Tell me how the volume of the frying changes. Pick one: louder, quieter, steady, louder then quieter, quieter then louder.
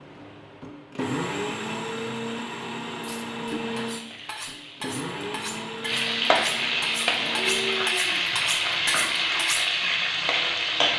louder.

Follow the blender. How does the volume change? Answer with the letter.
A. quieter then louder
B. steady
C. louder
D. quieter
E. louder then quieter
D.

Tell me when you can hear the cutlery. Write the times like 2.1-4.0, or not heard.
3.0-9.7.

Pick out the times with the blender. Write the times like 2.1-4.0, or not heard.
0.0-10.9.